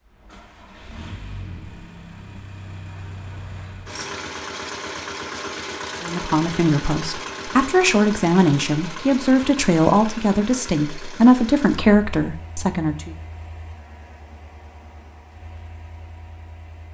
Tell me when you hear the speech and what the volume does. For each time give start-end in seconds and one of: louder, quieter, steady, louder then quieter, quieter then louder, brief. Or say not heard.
6.0-13.2 steady.